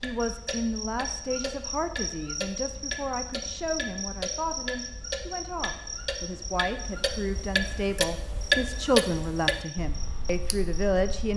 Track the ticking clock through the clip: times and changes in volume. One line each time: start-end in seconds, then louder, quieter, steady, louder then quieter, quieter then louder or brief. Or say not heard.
0.0-11.3 louder.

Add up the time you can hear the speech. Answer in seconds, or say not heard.
11 s.